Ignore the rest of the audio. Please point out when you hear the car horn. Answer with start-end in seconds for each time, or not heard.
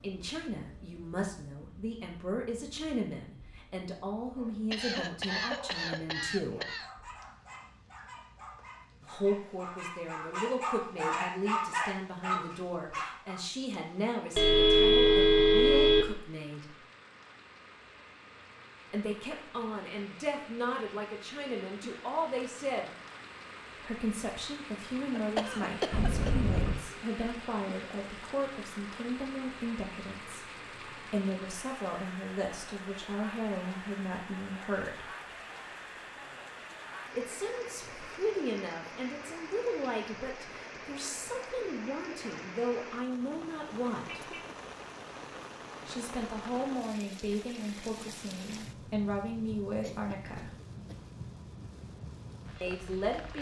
14.3-16.1, 25.9-26.9, 43.2-44.5.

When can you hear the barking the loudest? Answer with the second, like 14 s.
12 s.